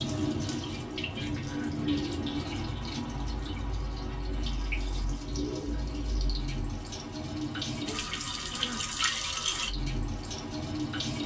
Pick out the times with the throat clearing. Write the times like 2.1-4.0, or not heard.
1.4-1.8, 8.5-8.9.